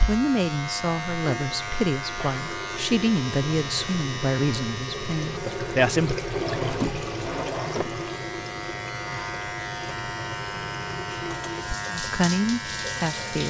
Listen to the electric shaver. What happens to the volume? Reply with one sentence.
The loudness of the electric shaver goes down, then up.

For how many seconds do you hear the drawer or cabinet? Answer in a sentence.
You can hear the drawer or cabinet for 2 seconds altogether.